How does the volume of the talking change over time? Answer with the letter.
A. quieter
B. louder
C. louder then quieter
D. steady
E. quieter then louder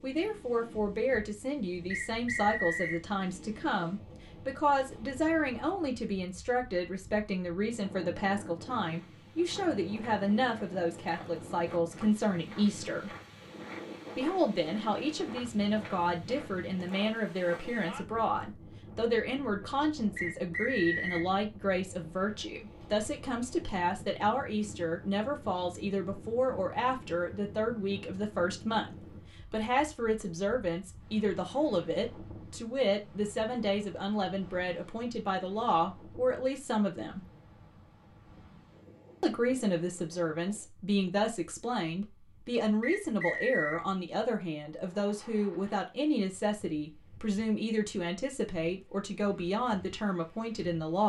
D.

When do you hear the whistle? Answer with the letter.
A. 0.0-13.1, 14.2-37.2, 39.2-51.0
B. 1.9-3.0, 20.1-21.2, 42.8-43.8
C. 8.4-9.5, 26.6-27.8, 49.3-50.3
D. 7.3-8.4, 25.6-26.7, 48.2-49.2
B.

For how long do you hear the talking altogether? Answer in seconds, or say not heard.
48 s.